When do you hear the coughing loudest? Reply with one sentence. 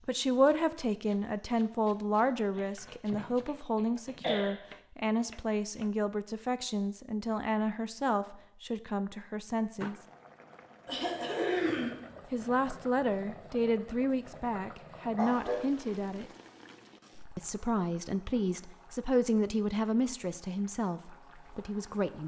The loudest moment of the coughing is at 12 seconds.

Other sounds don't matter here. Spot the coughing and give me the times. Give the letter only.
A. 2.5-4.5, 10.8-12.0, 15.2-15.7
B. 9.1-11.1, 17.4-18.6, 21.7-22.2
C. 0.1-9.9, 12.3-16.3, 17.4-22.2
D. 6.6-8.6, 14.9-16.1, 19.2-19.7
A.